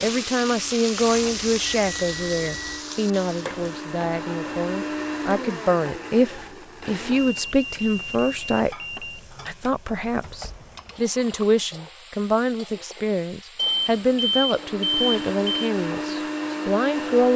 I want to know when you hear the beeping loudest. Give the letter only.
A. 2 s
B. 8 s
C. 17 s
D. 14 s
D.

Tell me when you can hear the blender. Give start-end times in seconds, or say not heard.
0.0-7.3, 14.5-17.3.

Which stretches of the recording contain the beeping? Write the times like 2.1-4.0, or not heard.
1.1-2.9, 7.2-9.2, 13.6-15.7.